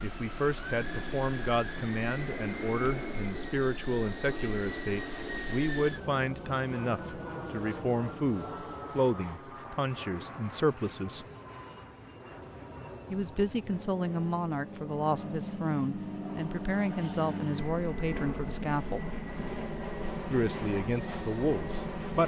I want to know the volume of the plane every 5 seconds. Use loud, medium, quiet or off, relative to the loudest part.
loud, loud, medium, loud, loud.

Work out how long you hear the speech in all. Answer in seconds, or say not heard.
19 s.